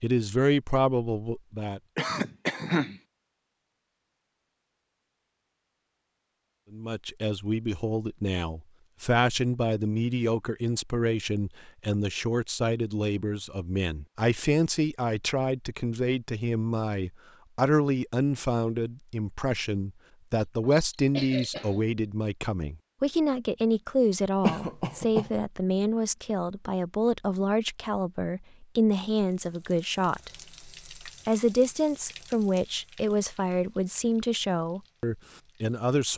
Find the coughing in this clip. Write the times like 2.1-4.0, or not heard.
1.9-3.0, 20.4-21.8, 24.4-25.3.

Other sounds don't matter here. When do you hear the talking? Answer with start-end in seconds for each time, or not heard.
0.0-1.8, 6.7-30.3, 31.1-36.1.